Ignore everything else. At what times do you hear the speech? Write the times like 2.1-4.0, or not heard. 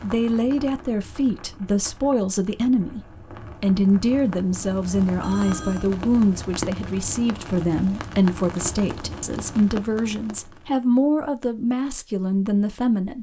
0.0-3.0, 3.6-13.1.